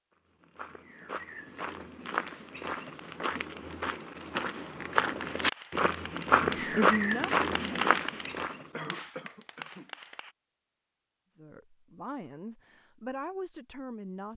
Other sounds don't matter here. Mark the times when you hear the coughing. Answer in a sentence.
The coughing can be heard from 8.7 to 9.9 s.